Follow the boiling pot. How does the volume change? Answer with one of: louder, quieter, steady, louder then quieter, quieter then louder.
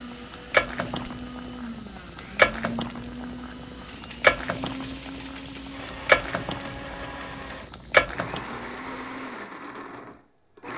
louder.